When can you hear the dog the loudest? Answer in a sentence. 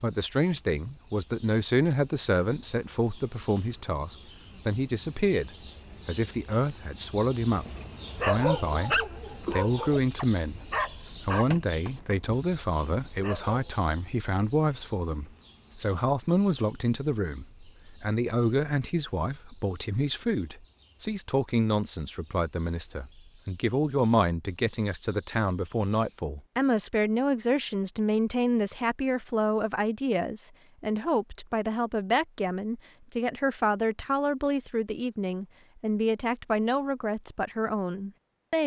The loudest moment of the dog is at 8 seconds.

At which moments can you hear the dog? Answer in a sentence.
The dog can be heard from 7.5 to 13.8 s.